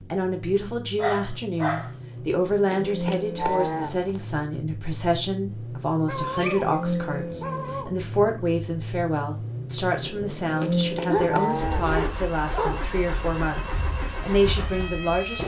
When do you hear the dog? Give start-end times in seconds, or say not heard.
0.9-2.5, 6.0-6.8, 7.4-7.9, 11.1-12.8.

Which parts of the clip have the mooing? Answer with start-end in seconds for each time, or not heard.
2.7-4.2, 10.6-11.9.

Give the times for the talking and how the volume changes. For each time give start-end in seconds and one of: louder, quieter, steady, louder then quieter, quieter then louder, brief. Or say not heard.
0.0-15.4 steady.